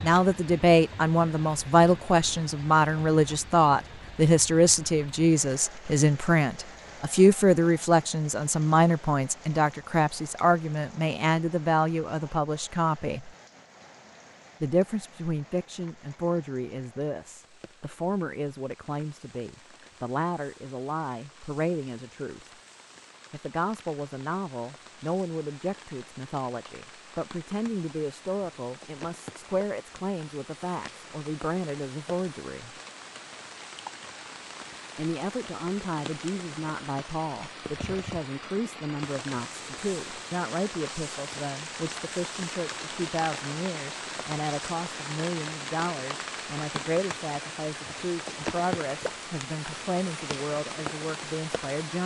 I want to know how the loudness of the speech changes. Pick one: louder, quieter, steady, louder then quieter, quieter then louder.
quieter.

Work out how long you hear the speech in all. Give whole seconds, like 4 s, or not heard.
48 s.